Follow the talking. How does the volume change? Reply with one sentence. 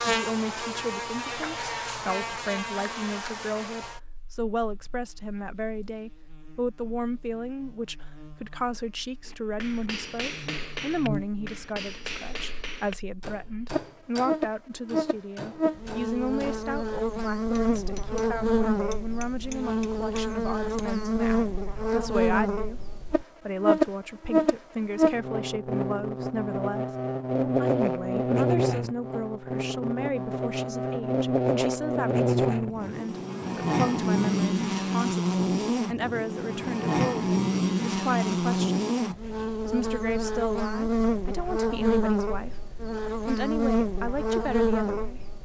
The volume of the talking stays about the same.